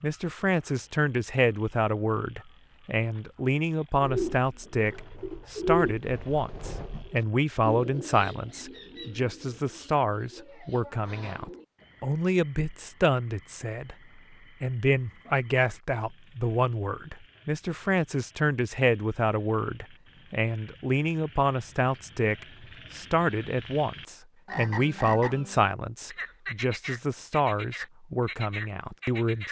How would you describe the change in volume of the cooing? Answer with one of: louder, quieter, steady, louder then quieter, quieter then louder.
quieter.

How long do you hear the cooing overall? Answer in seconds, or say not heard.
8 s.